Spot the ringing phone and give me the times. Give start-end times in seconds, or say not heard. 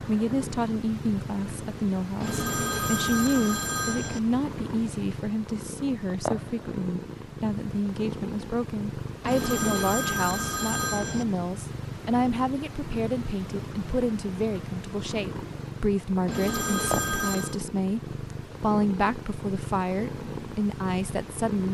2.2-4.2, 9.2-11.2, 16.2-17.6.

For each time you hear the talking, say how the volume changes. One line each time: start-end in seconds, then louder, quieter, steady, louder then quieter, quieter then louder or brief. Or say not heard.
0.1-21.6 steady.